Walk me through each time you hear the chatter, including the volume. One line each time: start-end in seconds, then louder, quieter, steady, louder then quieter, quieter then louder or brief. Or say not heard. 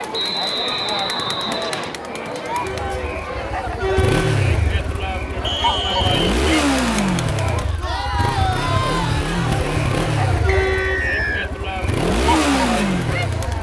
0.0-13.5 steady.